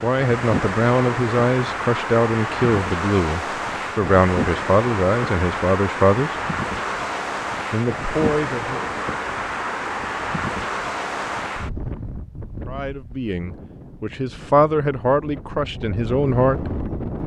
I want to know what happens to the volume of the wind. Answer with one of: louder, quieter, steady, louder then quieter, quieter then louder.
quieter.